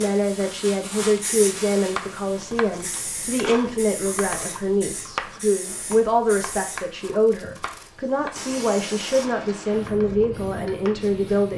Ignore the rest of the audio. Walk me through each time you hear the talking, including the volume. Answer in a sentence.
You can hear the talking from 0.0 to 11.5 s, at a steady volume.